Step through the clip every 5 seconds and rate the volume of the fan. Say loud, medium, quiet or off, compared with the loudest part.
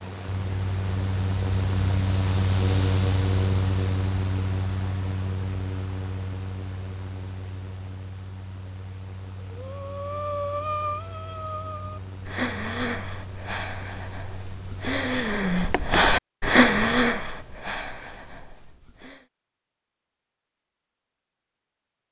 loud, medium, quiet, off, off.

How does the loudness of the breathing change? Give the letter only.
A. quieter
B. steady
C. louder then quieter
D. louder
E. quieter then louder
C.